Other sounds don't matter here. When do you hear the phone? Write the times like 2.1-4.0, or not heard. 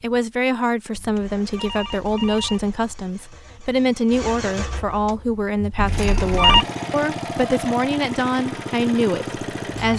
0.9-2.8, 5.8-6.7.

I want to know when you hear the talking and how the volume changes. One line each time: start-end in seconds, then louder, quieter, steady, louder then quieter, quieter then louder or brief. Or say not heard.
0.0-9.9 steady.